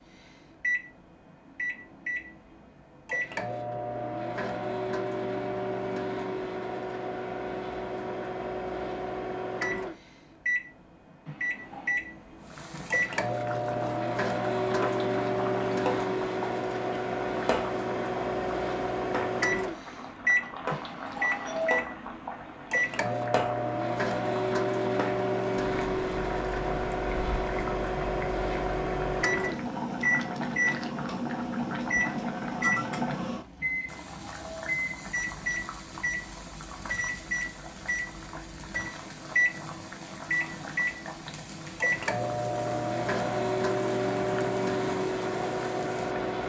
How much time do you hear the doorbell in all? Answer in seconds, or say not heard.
3 s.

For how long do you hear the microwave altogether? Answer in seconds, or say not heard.
46 s.